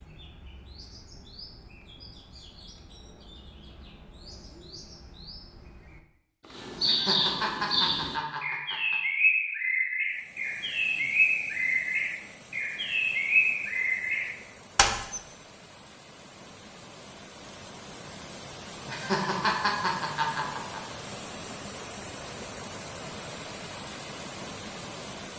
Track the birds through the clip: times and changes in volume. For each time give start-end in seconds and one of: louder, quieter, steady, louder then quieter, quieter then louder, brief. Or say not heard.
0.0-15.2 louder.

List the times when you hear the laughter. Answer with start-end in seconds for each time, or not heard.
6.8-8.9, 18.9-20.8.